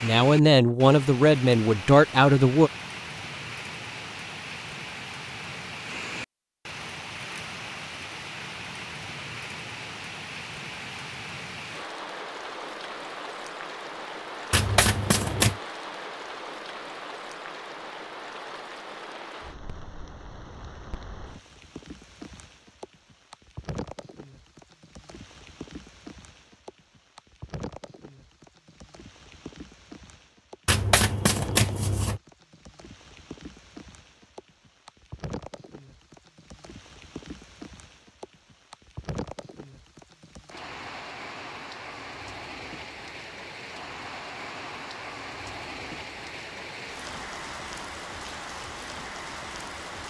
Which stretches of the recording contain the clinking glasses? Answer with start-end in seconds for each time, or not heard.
not heard.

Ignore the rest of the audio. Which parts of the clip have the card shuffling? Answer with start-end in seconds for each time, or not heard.
14.5-15.6, 30.6-32.2.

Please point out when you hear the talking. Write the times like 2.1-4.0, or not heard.
0.0-2.7.